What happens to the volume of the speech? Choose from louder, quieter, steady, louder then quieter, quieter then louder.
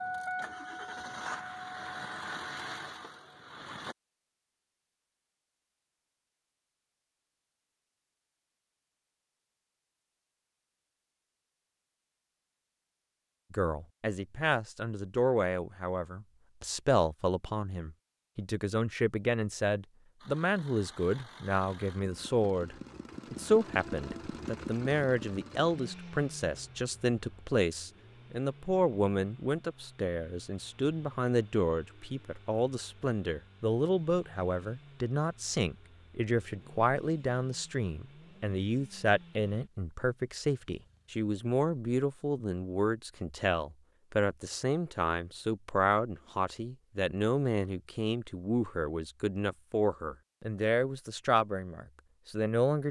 steady.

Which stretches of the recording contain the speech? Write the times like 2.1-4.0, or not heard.
13.5-52.8.